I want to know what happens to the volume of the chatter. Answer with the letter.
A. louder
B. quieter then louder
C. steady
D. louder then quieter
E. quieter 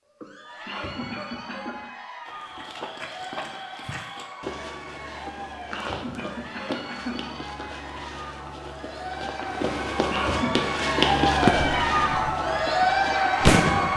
A.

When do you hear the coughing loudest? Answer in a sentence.
The volume of the coughing peaks at 10 seconds.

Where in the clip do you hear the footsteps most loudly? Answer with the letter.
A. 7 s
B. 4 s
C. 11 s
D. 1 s
C.